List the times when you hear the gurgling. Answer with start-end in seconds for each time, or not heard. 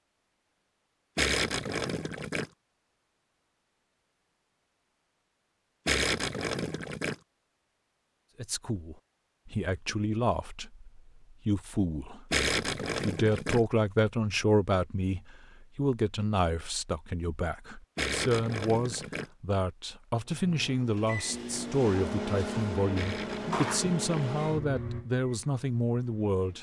1.1-2.5, 5.8-7.2, 12.3-13.6, 17.9-19.3, 22.9-24.2.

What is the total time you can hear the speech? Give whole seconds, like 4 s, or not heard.
18 s.